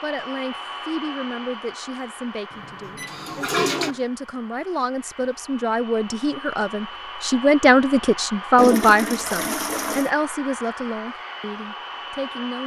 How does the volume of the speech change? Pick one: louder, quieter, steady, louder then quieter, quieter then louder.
louder then quieter.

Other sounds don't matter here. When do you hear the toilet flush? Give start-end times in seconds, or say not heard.
2.5-4.0, 8.6-10.1.